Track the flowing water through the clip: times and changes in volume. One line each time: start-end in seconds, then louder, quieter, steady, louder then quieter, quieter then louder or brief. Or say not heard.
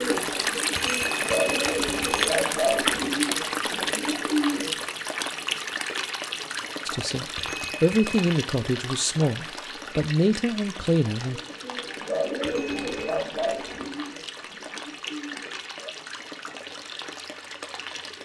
0.0-18.1 quieter.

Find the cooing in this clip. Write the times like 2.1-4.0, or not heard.
0.0-5.0, 11.2-15.9.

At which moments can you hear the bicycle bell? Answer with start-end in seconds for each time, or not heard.
0.8-2.4, 7.3-8.2, 12.4-13.2.